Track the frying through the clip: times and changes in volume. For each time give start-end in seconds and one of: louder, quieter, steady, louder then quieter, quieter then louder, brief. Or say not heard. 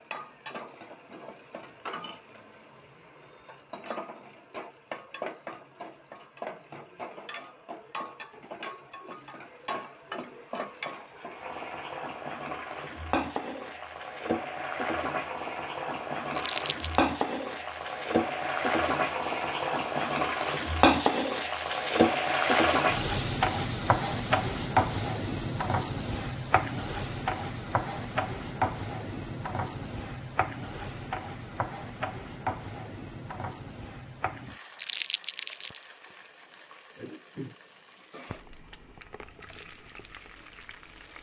0.0-41.1 louder then quieter.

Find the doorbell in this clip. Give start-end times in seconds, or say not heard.
not heard.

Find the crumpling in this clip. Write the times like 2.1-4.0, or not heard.
16.4-17.1, 34.8-35.8.